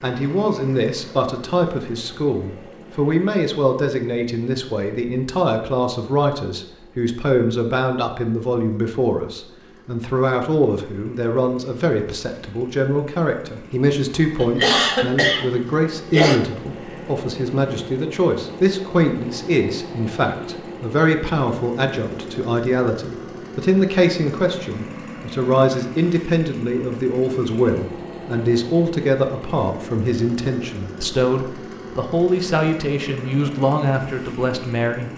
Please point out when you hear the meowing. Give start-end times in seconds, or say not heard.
not heard.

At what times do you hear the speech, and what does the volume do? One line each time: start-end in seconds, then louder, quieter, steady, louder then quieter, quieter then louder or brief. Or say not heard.
0.0-35.1 steady.